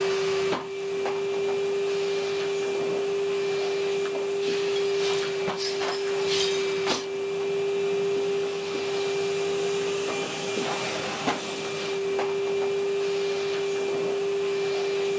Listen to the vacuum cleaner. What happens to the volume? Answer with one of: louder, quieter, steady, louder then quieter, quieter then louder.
steady.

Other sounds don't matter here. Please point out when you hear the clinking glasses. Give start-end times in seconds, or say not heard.
4.4-7.1.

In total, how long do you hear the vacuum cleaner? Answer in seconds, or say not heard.
15 s.